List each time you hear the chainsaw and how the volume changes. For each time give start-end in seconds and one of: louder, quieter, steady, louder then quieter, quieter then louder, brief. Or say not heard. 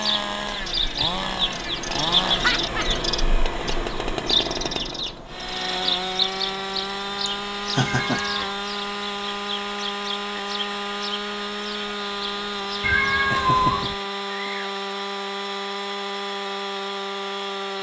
0.0-17.7 steady.